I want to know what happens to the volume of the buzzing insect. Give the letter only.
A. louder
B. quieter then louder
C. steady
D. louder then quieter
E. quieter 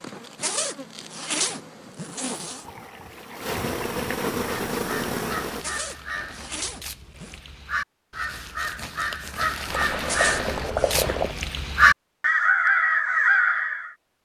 A.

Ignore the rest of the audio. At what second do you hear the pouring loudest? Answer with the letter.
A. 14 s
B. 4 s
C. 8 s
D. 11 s
D.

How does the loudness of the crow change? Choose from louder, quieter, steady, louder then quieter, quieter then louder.
louder.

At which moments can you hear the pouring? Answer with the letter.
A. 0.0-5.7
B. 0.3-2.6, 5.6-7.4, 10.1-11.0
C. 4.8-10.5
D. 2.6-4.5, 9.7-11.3
D.